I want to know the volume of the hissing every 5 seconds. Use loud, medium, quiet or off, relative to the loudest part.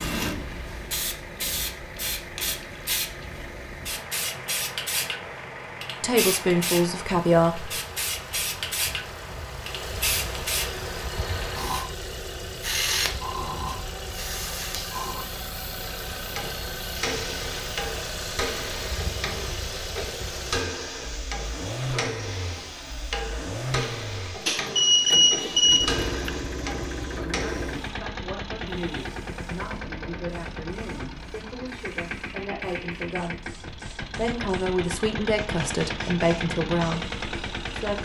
loud, loud, loud, medium, medium, quiet, quiet, quiet.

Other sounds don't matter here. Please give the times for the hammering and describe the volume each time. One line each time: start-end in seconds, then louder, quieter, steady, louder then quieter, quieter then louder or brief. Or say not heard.
16.0-27.9 steady.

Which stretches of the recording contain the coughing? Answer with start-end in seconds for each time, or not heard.
not heard.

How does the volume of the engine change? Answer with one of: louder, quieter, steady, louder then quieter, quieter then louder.
louder.